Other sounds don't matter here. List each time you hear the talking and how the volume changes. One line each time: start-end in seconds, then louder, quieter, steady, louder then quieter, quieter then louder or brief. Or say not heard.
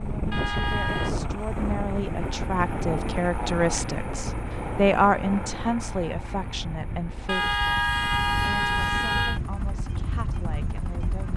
0.0-11.3 louder then quieter.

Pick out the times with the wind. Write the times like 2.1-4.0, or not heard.
0.0-11.3.